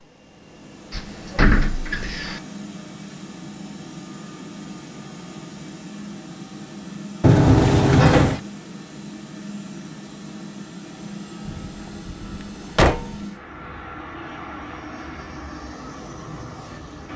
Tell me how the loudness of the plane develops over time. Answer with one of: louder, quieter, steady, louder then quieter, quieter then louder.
steady.